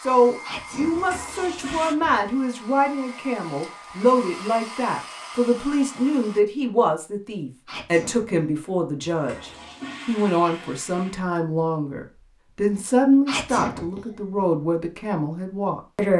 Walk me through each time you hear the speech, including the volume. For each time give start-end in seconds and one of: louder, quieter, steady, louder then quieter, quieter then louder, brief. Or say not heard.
0.0-16.1 steady.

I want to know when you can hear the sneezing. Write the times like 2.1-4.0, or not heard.
0.4-2.2, 7.7-8.4, 13.2-14.2.